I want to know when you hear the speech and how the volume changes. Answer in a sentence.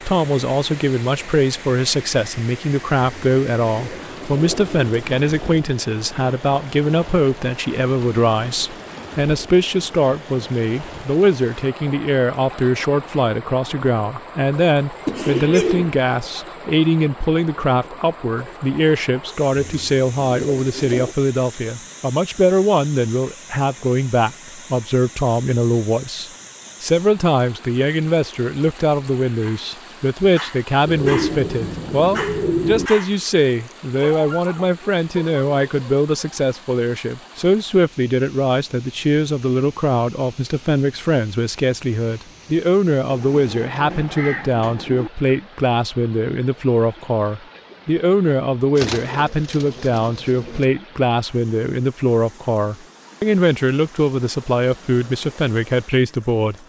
The speech can be heard from 0.0 to 56.5 s, at a steady volume.